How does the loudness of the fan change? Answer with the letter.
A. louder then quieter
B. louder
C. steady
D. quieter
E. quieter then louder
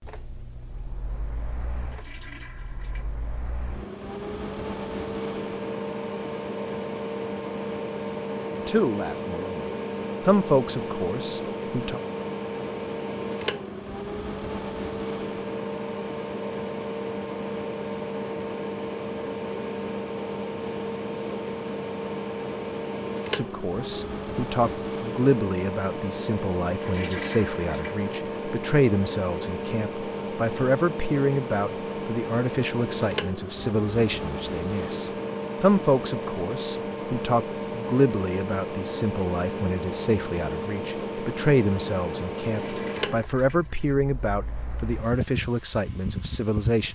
C.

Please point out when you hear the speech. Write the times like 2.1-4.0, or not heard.
8.6-12.0, 23.3-46.9.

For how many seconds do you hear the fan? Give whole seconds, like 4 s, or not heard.
47 s.